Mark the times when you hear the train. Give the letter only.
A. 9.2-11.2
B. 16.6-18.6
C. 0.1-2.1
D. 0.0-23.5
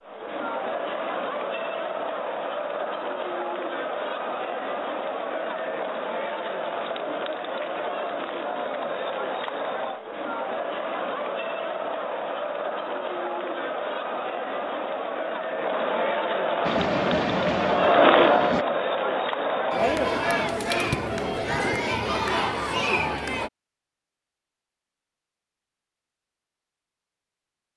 B.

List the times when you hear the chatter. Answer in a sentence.
You can hear the chatter from 0.0 to 23.5 s.